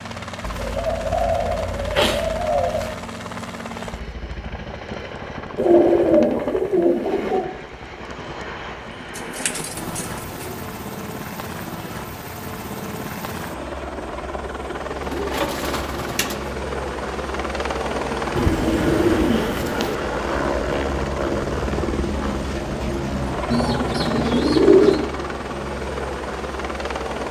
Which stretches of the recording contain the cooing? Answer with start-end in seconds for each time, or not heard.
0.4-2.9, 5.5-7.5, 9.2-10.6, 15.0-16.4, 18.4-19.9, 23.5-25.1.